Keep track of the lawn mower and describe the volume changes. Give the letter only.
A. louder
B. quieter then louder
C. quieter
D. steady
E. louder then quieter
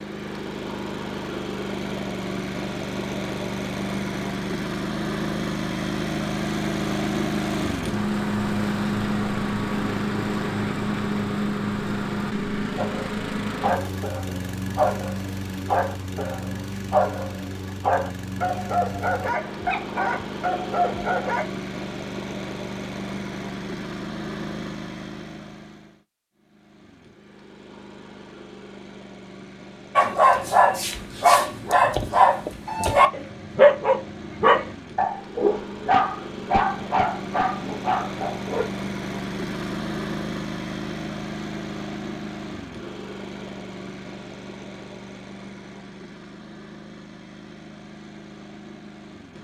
C.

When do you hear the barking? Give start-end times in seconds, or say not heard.
12.8-21.4, 29.9-38.6.